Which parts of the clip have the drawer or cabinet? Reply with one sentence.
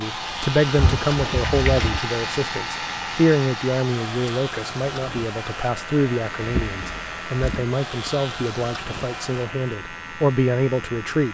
The drawer or cabinet can be heard from 0.8 to 2.0 s and from 6.4 to 7.7 s.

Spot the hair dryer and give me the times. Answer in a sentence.
You can hear the hair dryer from 0.0 to 9.6 s.